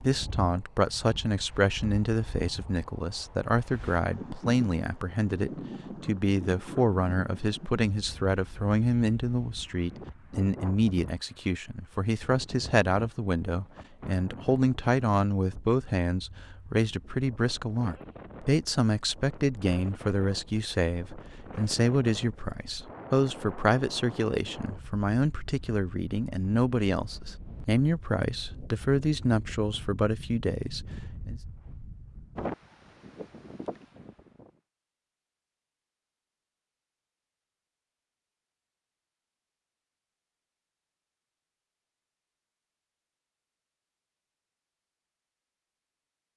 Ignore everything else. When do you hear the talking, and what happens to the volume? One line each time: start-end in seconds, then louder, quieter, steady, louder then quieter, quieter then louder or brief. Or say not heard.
0.0-31.4 steady.